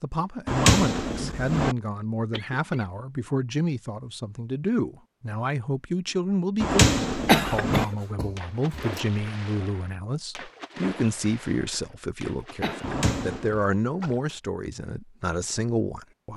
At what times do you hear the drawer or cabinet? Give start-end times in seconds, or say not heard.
0.5-1.8, 6.6-7.8, 12.8-13.5.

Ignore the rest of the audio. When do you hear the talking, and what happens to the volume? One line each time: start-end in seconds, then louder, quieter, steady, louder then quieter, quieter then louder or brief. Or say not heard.
0.0-16.3 steady.